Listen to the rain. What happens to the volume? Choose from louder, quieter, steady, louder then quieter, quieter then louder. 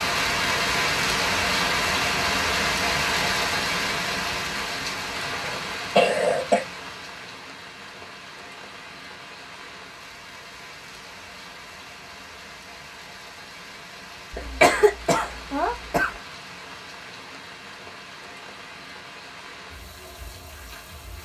quieter.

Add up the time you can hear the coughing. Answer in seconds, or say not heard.
3 s.